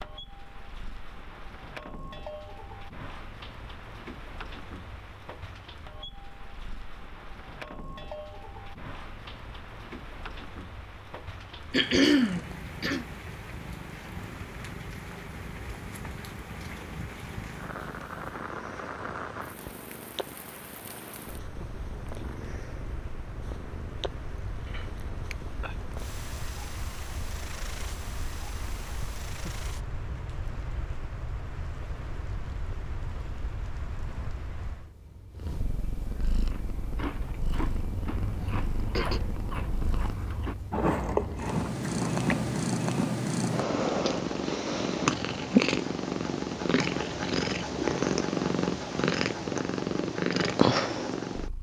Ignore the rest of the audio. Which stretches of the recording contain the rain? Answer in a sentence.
The rain can be heard from 0.0 to 34.9 s.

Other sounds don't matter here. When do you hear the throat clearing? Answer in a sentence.
The throat clearing can be heard from 11.7 to 13.1 s, from 24.6 to 25.8 s and from 38.4 to 39.2 s.